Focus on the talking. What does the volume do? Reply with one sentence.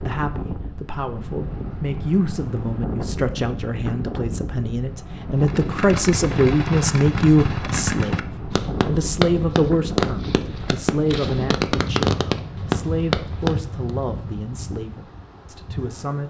The loudness of the talking goes up, then down.